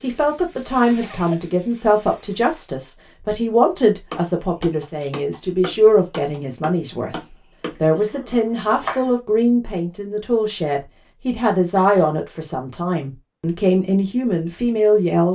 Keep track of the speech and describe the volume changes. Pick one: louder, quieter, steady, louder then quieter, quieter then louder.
steady.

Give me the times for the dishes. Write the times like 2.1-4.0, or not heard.
not heard.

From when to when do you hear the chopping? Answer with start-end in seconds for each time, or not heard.
4.1-9.1.